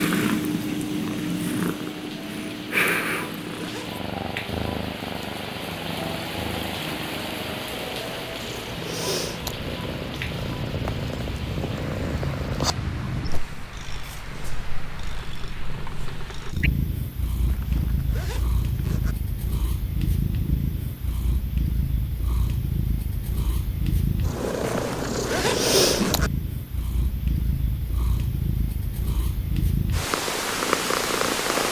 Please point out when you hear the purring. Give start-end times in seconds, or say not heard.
0.0-31.6.